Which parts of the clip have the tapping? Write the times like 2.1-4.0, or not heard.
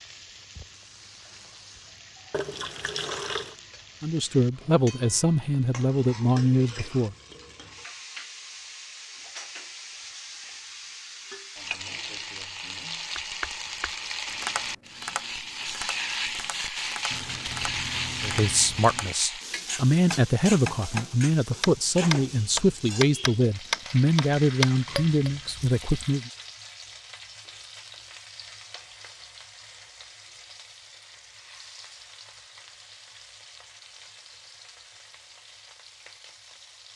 13.2-25.3.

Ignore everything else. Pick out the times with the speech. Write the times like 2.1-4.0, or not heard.
4.0-7.2, 18.2-26.3.